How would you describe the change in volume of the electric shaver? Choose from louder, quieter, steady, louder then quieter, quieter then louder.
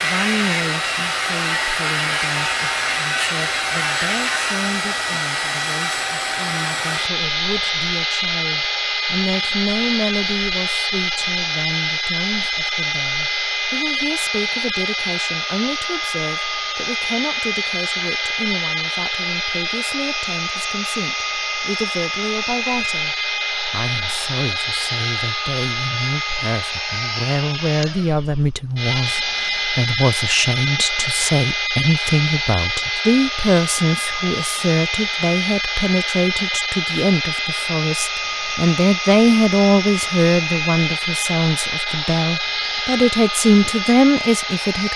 steady.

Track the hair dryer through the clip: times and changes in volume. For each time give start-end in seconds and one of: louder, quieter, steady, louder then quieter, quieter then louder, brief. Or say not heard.
0.0-44.9 steady.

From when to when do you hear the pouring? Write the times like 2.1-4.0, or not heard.
not heard.